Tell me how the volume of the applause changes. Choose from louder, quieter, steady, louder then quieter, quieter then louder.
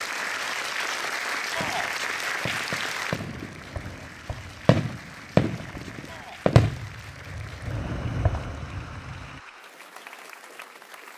quieter.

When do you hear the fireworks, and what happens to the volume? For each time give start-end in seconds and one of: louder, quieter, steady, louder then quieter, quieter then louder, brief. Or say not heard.
1.6-9.4 louder then quieter.